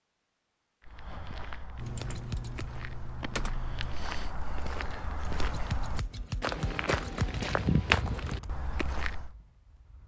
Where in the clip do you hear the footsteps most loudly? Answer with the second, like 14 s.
8 s.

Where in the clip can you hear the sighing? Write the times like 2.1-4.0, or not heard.
not heard.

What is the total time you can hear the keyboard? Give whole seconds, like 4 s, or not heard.
4 s.